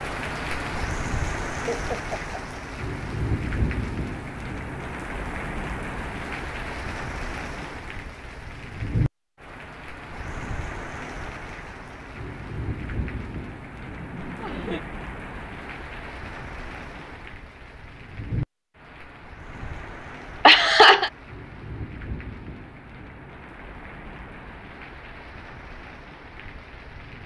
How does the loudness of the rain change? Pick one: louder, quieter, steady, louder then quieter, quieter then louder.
quieter.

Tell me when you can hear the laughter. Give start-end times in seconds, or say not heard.
1.6-2.6, 13.9-14.8, 20.4-21.1.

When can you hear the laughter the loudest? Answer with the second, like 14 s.
21 s.